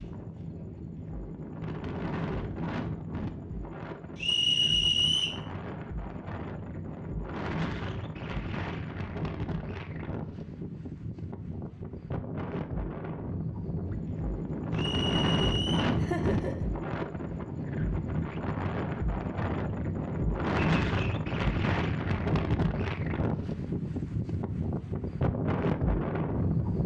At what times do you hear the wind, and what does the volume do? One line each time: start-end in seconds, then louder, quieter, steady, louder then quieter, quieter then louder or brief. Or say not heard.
0.0-26.8 louder.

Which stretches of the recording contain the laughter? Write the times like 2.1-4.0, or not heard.
16.0-16.7.